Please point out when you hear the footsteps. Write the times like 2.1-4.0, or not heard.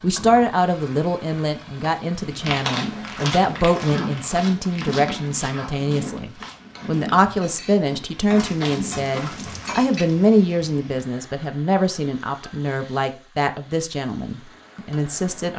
2.4-9.8.